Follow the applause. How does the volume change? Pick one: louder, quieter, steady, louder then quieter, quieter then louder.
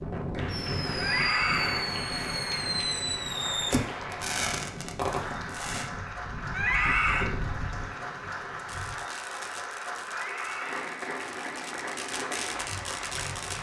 steady.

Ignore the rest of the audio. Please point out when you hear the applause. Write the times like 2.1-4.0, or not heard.
0.1-13.5.